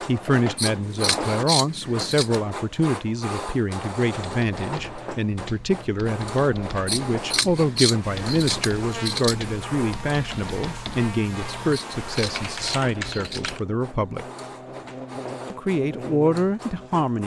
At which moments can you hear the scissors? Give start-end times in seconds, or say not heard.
0.6-2.4, 6.8-9.5, 11.7-13.6.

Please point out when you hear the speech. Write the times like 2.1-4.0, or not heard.
0.1-14.2, 15.5-17.2.